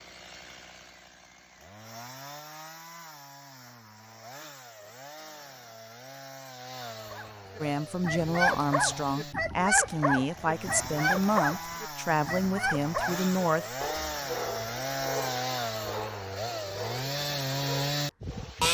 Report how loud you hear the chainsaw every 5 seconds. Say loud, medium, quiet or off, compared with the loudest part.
quiet, quiet, medium, loud.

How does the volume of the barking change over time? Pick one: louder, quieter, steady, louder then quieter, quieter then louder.
quieter.